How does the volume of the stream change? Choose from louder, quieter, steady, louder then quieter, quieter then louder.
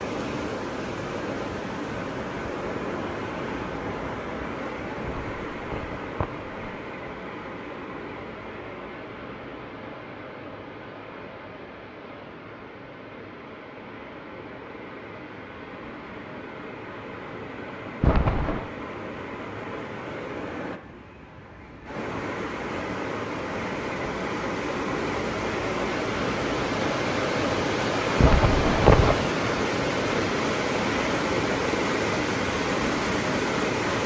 quieter then louder.